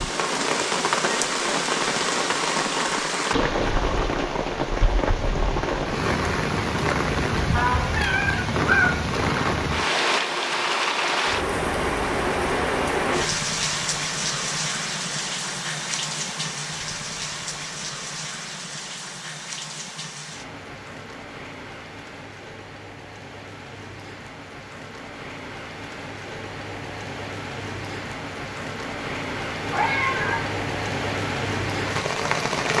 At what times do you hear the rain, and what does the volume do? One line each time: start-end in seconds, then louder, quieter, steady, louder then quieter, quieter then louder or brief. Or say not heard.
0.0-32.7 quieter then louder.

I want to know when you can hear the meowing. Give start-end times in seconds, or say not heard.
7.5-8.9, 29.6-30.4.